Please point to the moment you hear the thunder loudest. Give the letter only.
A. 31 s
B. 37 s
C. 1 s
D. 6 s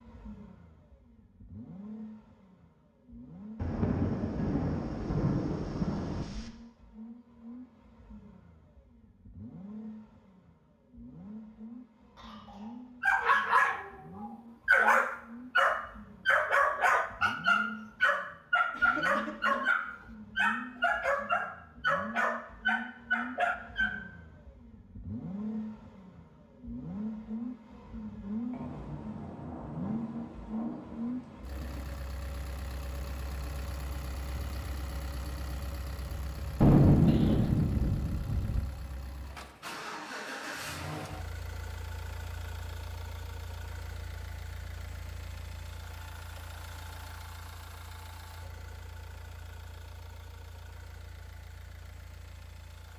B.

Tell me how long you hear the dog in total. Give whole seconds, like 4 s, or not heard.
11 s.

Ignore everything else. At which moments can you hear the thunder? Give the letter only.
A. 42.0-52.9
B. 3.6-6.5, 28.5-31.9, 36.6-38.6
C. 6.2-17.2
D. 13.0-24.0
B.